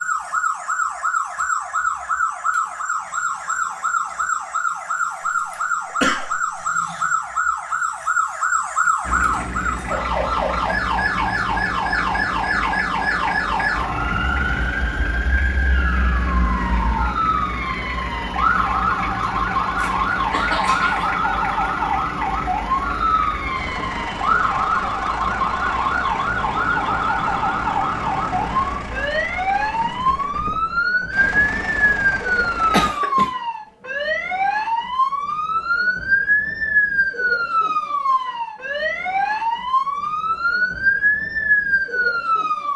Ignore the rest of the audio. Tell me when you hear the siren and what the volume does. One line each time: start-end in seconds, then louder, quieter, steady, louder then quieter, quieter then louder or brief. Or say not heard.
0.0-42.7 steady.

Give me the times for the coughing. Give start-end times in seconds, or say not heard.
6.0-6.6, 19.8-21.1, 32.7-33.3.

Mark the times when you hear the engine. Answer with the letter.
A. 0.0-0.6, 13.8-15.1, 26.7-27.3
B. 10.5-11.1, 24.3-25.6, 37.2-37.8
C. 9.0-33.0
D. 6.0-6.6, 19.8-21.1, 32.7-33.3
C.